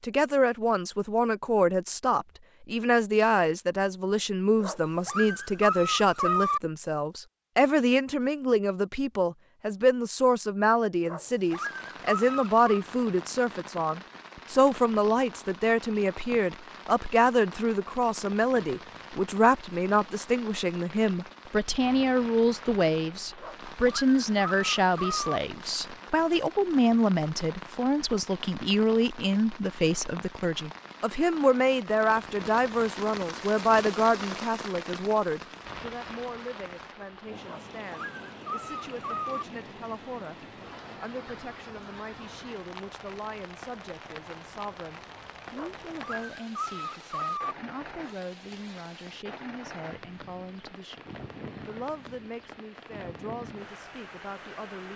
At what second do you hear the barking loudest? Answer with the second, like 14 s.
6 s.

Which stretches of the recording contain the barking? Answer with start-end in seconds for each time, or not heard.
4.6-6.6, 11.1-12.7, 23.4-25.4, 37.5-39.5, 45.5-47.5.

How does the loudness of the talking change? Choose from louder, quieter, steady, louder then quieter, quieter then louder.
quieter.